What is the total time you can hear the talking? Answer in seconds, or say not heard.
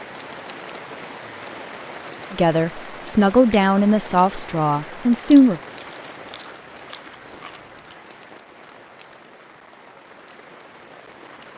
3 s.